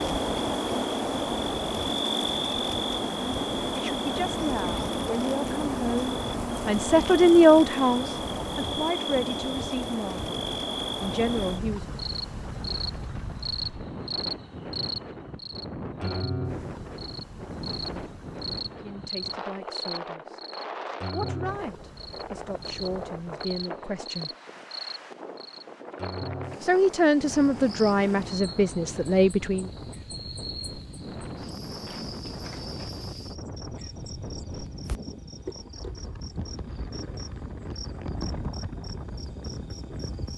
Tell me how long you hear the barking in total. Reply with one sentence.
The barking can't be heard in this clip.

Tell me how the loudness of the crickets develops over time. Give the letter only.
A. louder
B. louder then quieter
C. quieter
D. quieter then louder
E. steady
C.